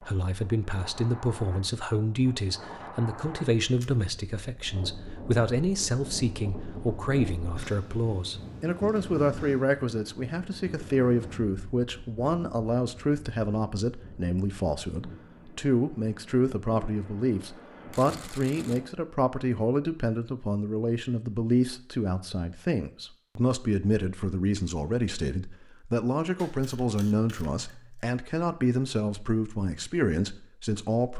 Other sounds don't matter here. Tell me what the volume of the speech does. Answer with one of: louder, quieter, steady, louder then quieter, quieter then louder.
steady.